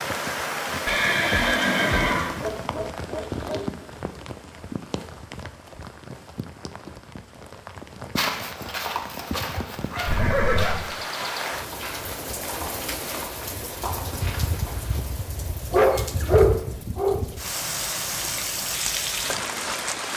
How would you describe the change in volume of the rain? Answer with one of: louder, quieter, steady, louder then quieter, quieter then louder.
quieter then louder.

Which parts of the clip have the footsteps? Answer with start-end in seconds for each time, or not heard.
8.2-15.0.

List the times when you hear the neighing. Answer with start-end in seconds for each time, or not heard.
0.8-2.4, 10.1-10.8, 16.0-16.4.